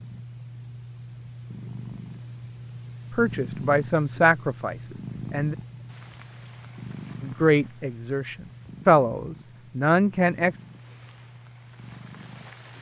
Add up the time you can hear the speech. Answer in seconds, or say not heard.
6 s.